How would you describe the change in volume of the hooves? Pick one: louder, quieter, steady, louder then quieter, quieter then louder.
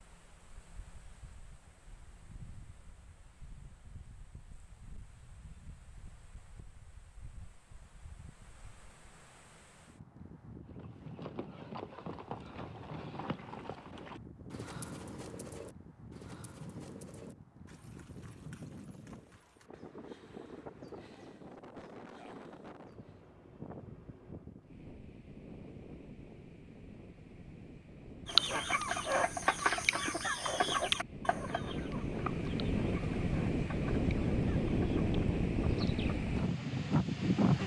quieter.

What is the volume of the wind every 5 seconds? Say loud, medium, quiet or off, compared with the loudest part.
quiet, quiet, quiet, quiet, quiet, quiet, loud, loud.